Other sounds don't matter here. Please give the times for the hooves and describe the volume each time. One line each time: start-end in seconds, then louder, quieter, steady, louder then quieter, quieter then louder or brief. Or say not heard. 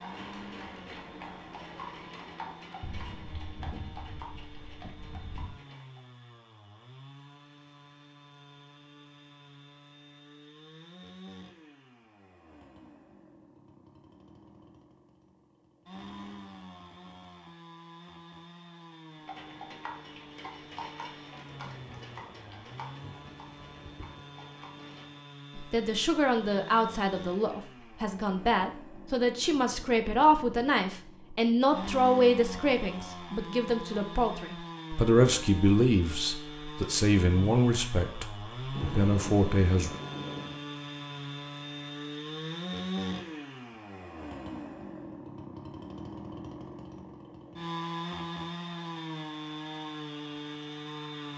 0.0-6.0 quieter
19.1-25.2 quieter.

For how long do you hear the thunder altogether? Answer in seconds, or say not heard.
7 s.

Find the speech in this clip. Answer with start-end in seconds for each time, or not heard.
25.6-39.9.